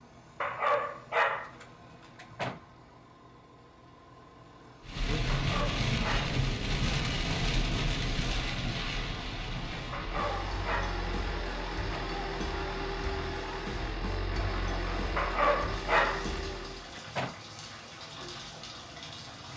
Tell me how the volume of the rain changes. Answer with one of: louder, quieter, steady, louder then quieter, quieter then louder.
quieter.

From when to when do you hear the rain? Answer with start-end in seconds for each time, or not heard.
4.8-19.5.